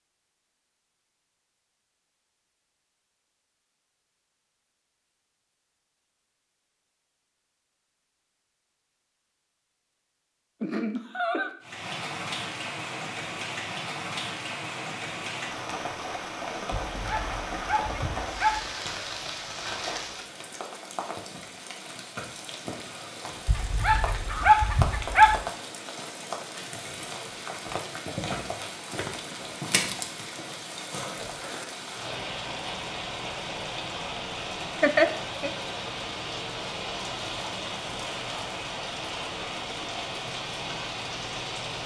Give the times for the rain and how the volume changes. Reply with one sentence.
You can hear the rain from 11.6 to 41.8 s, at a steady volume.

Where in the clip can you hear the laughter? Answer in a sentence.
The laughter can be heard from 10.6 to 11.5 s and from 34.8 to 35.5 s.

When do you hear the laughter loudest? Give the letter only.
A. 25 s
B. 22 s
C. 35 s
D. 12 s
C.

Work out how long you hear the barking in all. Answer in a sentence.
You can hear the barking for 4 seconds altogether.